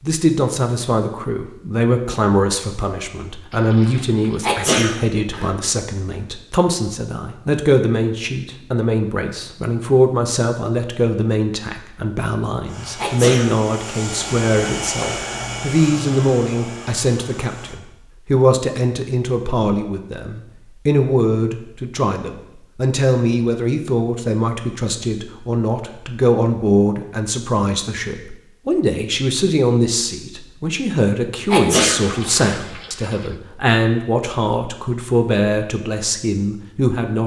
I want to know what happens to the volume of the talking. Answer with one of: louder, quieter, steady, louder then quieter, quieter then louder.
steady.